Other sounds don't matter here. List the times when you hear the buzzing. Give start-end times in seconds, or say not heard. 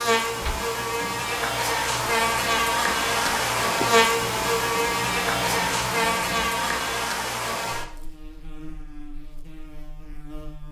0.0-10.6.